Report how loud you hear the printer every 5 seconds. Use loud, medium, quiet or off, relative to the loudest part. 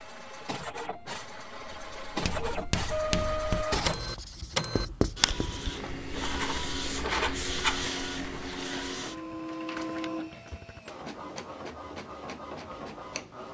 loud, loud, medium.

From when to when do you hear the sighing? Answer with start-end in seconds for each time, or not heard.
not heard.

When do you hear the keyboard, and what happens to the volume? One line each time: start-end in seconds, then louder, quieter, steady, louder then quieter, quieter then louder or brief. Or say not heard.
not heard.